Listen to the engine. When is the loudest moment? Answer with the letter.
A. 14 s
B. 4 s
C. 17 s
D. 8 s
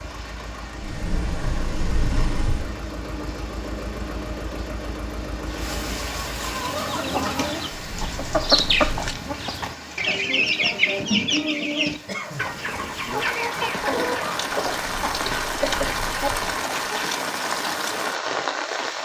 B.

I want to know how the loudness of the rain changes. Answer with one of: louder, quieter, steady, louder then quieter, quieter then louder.
louder.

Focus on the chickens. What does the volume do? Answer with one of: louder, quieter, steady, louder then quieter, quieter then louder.
quieter.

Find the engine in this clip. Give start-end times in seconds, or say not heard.
0.0-6.5.